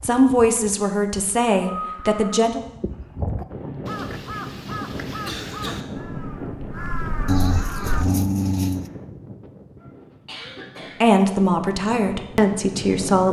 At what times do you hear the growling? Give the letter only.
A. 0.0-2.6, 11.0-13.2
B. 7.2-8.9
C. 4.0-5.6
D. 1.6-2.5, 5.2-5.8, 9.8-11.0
B.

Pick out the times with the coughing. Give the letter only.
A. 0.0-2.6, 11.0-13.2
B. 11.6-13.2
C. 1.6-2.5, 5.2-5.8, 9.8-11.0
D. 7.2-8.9
C.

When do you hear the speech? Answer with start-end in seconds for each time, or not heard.
0.0-2.6, 11.0-13.2.